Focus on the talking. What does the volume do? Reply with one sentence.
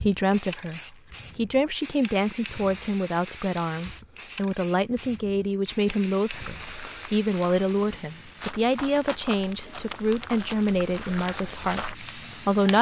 The loudness of the talking stays about the same.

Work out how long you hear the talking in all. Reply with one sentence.
You can hear the talking for 13 seconds altogether.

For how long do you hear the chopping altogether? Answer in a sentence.
The chopping can't be heard in this clip.